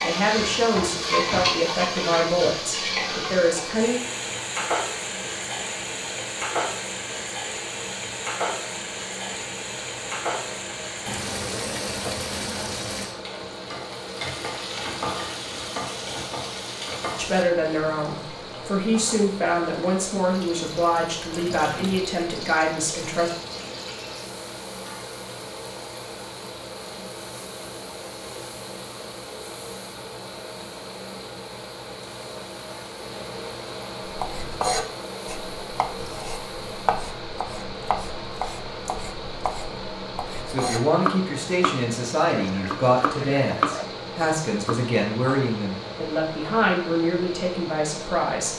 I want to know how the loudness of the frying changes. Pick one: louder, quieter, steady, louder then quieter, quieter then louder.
quieter.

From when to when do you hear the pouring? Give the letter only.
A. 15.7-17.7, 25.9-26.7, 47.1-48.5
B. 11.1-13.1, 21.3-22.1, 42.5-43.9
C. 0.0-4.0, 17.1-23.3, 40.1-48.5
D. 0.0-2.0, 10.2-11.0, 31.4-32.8
B.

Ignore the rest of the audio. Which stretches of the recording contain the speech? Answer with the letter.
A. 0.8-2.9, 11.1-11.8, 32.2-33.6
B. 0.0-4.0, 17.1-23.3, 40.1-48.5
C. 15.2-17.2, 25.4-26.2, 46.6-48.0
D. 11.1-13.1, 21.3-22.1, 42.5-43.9
B.